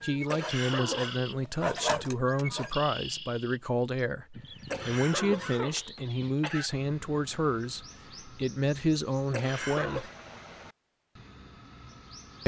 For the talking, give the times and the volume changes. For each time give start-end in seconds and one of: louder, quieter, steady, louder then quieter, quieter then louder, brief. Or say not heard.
0.0-10.1 steady.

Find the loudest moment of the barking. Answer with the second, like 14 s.
2 s.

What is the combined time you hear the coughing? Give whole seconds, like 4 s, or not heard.
4 s.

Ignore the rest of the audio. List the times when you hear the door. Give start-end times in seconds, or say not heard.
not heard.